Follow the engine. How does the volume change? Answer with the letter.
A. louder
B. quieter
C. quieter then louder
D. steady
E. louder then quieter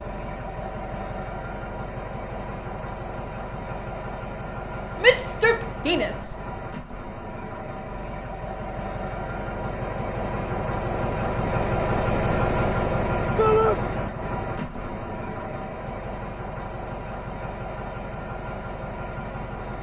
E.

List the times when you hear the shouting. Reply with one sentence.
You can hear the shouting from 5.0 to 6.3 s and from 13.3 to 13.8 s.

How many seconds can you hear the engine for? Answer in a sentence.
The engine can be heard for 20 seconds in total.